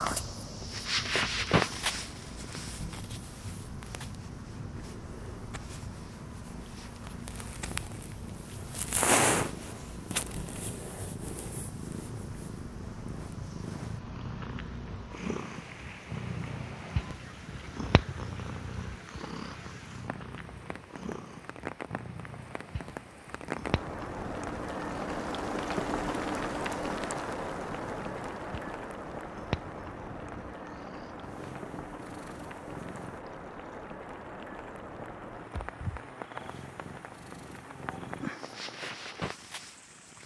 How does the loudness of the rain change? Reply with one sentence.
The loudness of the rain goes up, then down.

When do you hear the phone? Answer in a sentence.
The phone can't be heard in this clip.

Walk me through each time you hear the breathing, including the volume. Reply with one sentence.
The breathing can't be heard in this clip.